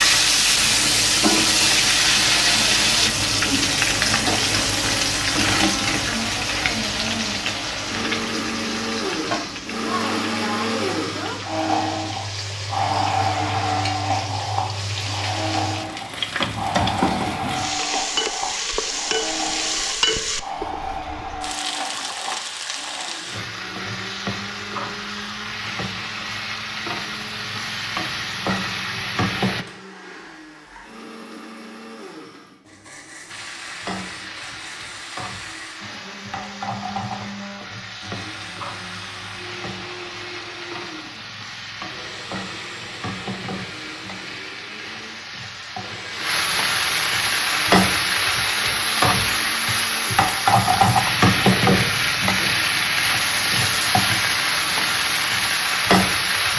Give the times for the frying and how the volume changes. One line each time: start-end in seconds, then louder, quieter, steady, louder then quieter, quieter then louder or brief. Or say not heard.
0.0-29.6 quieter
33.2-56.5 louder.